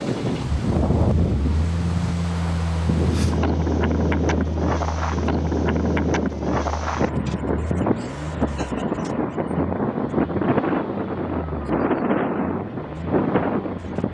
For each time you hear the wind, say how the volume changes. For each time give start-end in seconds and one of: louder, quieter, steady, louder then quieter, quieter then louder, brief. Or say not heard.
0.0-14.1 steady.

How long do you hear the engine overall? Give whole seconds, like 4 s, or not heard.
14 s.